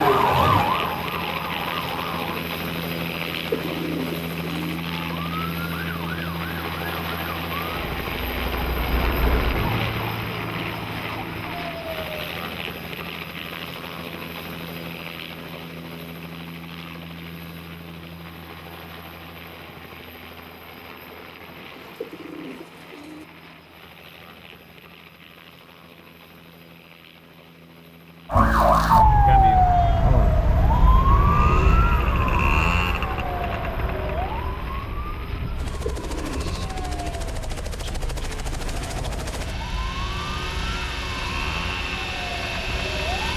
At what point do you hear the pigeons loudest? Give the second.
4 s.